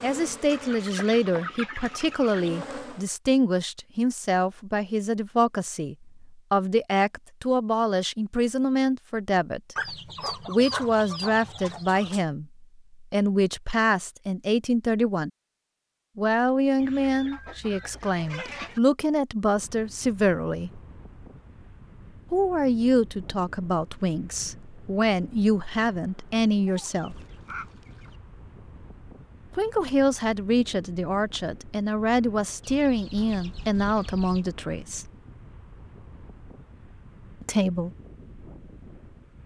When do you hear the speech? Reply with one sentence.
The speech can be heard from 0.0 to 15.3 s, from 16.1 to 20.8 s, from 22.3 to 27.1 s, from 29.5 to 35.1 s and from 37.4 to 37.9 s.